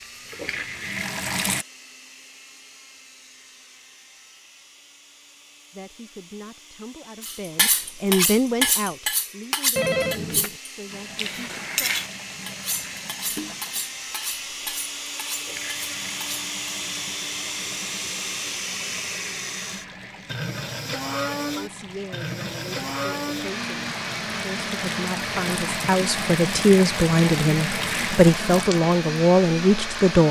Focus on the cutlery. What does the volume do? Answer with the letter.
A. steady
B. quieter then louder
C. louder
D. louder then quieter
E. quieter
E.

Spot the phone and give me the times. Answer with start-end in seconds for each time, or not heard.
9.8-10.6.